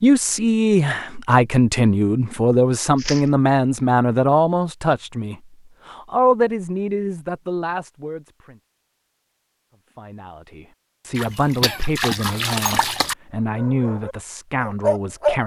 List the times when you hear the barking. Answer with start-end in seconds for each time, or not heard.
13.4-15.4.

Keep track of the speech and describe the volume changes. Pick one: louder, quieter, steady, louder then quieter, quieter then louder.
quieter.